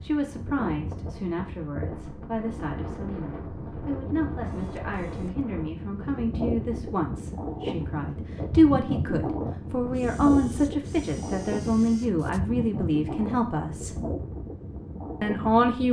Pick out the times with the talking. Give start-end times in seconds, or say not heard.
0.0-14.0, 15.2-15.8.